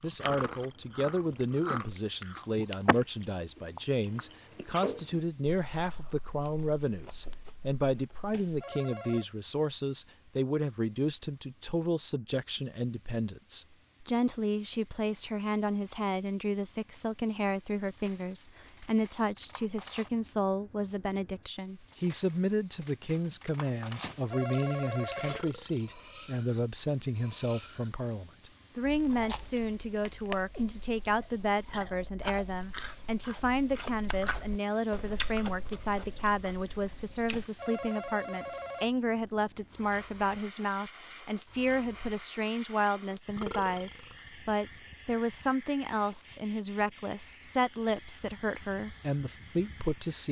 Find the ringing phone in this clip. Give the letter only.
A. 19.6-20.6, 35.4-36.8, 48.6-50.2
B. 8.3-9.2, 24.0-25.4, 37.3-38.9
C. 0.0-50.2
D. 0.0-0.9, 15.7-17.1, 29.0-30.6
B.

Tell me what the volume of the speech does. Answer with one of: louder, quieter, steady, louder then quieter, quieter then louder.
steady.